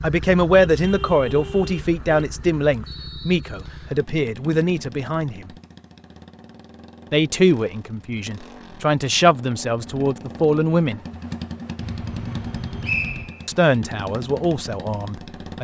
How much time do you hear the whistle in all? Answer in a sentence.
You can hear the whistle for 2 seconds altogether.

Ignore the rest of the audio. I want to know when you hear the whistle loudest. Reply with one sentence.
The volume of the whistle peaks at 13 seconds.